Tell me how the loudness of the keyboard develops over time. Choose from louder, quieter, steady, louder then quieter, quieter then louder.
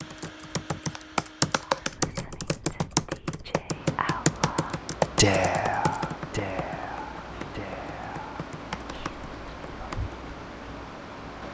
quieter.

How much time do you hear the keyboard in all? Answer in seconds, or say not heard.
10 s.